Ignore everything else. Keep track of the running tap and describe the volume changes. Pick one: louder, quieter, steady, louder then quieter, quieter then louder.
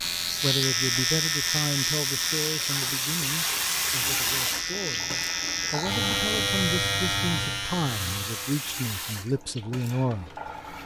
louder then quieter.